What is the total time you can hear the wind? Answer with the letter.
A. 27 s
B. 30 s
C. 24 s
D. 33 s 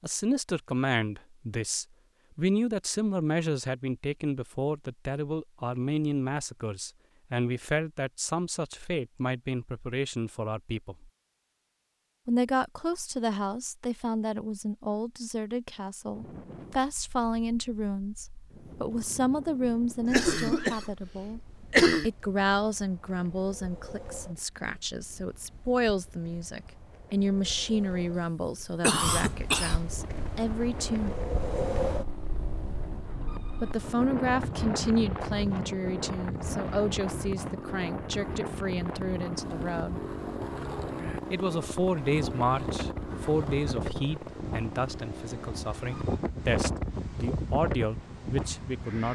D.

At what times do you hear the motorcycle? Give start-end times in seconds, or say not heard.
29.9-46.2.